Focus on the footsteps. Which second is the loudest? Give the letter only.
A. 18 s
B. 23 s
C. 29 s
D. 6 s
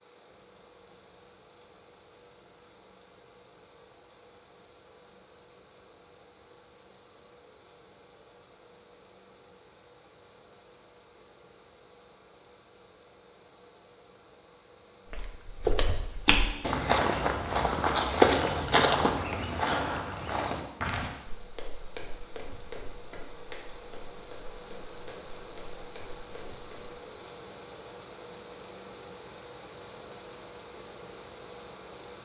A.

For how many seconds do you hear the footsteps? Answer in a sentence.
The footsteps can be heard for 12 seconds in total.